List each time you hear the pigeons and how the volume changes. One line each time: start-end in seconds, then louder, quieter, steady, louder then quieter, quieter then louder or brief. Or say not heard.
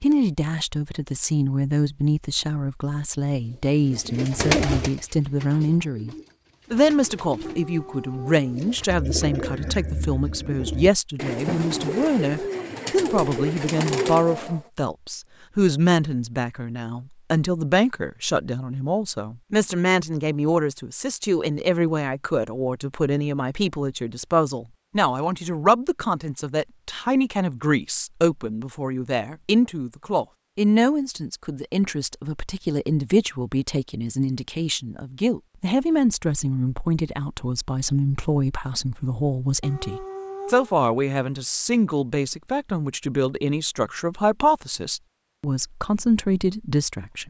3.8-14.6 quieter then louder.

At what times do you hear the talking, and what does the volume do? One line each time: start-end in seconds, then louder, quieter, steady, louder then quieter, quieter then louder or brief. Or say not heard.
0.0-47.2 steady.